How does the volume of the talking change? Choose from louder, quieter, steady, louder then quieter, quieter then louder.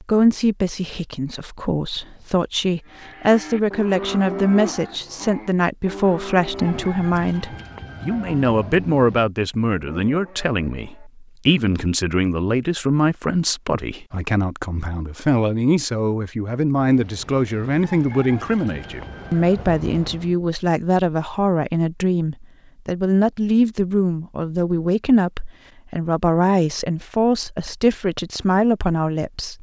steady.